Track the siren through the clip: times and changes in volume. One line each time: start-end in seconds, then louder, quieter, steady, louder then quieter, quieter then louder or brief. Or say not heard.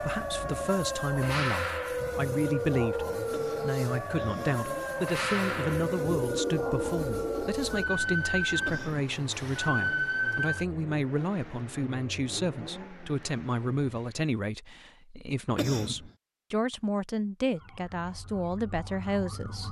0.0-10.7 steady
17.5-19.6 brief.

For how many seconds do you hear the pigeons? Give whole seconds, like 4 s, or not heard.
2 s.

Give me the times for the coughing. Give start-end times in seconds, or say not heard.
3.2-4.7, 8.6-9.1, 15.4-16.1.